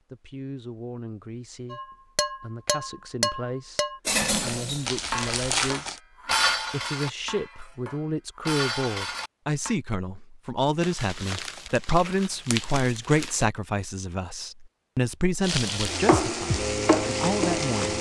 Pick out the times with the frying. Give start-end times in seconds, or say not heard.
4.3-5.7, 15.4-17.9.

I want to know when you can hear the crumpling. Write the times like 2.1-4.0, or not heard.
4.8-6.0, 10.8-13.4.